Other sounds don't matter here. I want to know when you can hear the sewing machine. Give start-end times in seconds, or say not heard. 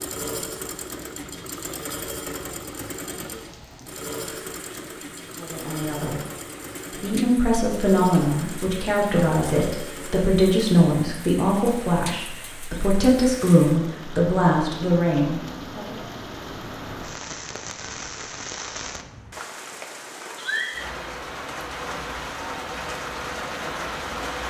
0.0-10.3.